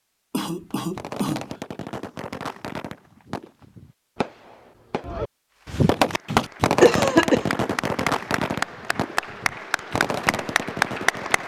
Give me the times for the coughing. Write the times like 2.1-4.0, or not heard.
0.3-1.5, 6.3-7.5.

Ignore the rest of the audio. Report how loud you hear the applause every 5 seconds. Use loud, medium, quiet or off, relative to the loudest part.
off, medium, loud.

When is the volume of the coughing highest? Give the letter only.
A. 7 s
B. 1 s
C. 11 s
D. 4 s
A.